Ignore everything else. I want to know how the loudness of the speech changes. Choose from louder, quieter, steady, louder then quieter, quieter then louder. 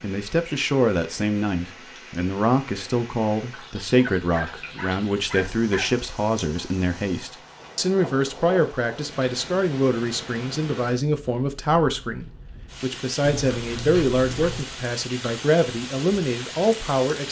steady.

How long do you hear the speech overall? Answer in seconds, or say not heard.
17 s.